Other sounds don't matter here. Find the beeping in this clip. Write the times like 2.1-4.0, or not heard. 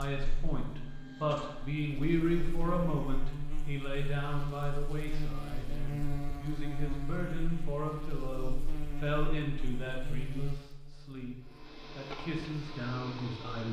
not heard.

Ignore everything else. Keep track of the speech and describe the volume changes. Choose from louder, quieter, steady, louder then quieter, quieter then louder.
quieter.